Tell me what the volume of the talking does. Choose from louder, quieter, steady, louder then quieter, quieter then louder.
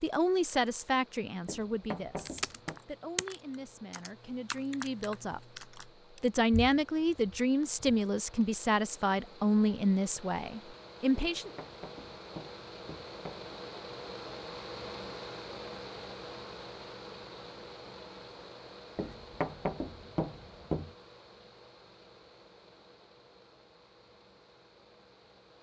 quieter then louder.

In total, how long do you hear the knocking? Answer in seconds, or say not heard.
6 s.